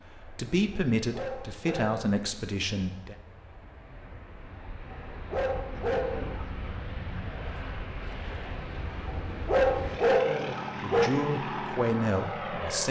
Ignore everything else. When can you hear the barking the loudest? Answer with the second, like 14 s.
10 s.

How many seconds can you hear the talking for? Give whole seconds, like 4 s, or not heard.
5 s.